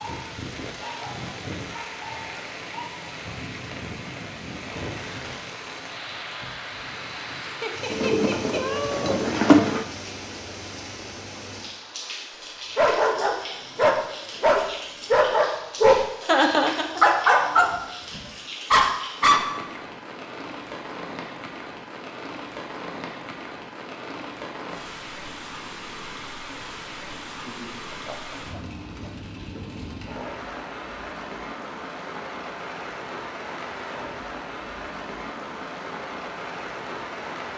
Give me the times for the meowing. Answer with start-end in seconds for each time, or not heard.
7.9-9.8.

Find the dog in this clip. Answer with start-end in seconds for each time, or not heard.
12.8-19.6.